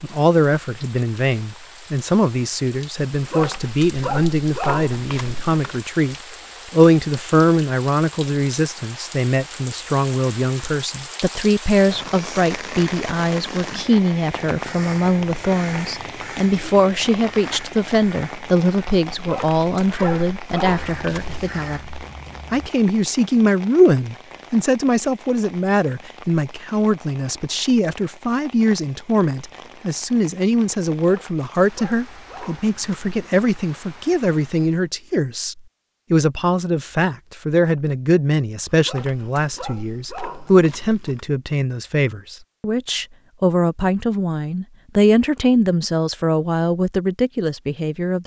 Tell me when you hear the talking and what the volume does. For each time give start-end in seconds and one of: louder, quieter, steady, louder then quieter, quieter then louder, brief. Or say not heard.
0.0-48.2 steady.